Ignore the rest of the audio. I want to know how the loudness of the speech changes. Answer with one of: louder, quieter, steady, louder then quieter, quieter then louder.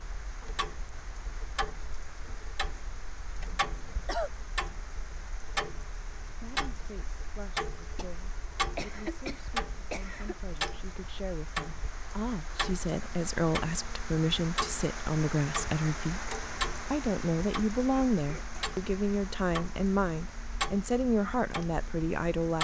louder.